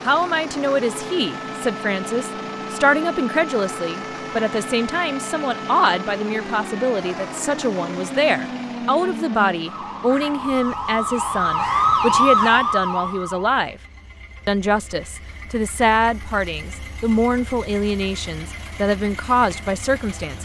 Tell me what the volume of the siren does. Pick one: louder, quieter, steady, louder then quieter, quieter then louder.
louder.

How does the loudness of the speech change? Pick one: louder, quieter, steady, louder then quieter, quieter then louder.
steady.